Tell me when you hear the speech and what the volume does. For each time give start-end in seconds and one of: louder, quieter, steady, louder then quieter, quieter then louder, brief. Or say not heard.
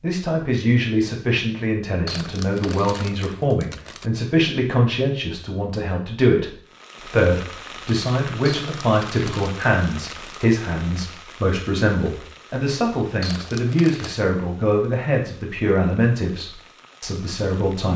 0.0-17.9 steady.